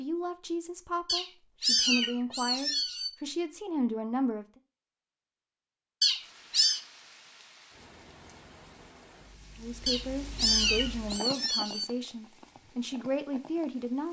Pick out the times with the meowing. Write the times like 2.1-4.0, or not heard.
1.1-3.1, 6.0-6.8, 9.8-11.8.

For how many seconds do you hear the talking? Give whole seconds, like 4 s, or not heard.
9 s.